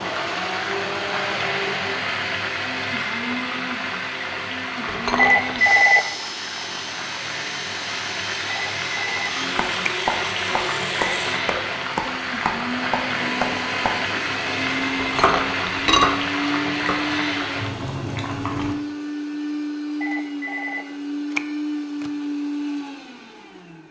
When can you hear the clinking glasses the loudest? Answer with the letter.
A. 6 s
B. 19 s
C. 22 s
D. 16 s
D.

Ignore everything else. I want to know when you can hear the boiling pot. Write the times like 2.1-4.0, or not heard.
0.0-18.8.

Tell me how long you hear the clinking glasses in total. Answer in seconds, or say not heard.
2 s.